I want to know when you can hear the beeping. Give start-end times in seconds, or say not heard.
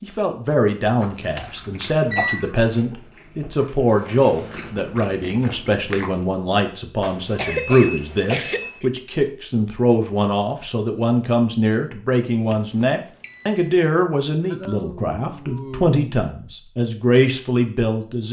1.4-2.5, 7.0-8.8, 12.5-13.7.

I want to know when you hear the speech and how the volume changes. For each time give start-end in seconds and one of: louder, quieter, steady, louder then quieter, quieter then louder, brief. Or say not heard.
0.0-18.2 steady.